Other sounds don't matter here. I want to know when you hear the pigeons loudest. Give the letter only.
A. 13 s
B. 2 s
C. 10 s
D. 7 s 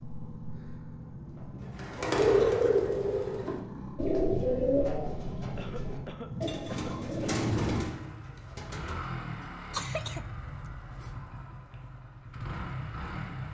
B.